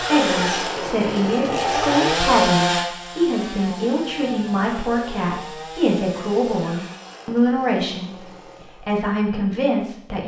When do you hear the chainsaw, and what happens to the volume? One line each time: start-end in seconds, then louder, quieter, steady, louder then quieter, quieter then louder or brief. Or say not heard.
0.0-9.0 quieter.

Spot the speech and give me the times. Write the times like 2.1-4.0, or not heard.
0.0-8.1, 8.8-10.2.